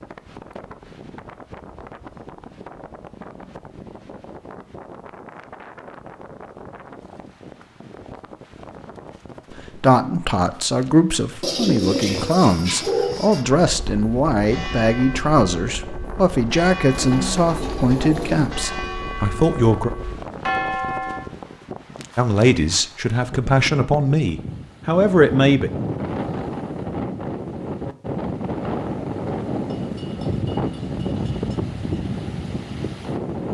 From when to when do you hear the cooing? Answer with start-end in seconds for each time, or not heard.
11.4-13.4, 16.9-18.6.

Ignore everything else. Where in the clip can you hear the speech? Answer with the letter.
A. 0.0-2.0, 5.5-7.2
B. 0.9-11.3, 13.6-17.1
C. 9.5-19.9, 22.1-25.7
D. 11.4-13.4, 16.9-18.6
C.